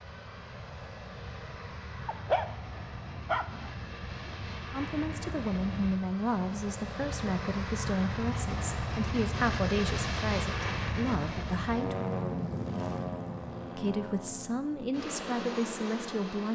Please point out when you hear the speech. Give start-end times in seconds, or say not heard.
4.7-11.9, 13.7-16.5.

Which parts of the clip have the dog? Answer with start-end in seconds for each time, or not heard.
2.0-4.5.